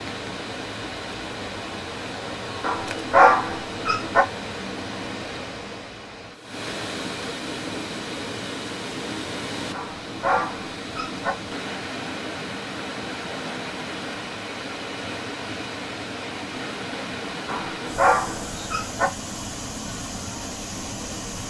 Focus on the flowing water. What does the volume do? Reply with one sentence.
The volume of the flowing water stays about the same.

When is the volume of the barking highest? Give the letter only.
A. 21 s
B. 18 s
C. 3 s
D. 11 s
C.